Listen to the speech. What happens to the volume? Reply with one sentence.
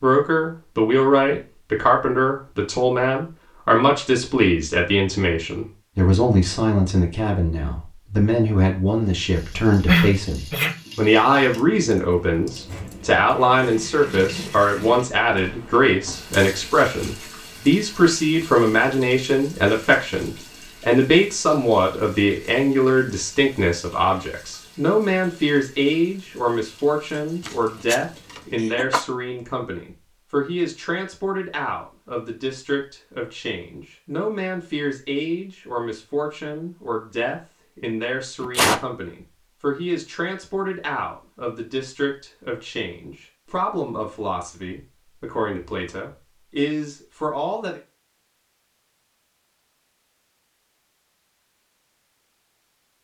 The volume of the speech goes down.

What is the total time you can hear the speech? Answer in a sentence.
The speech can be heard for 48 seconds in total.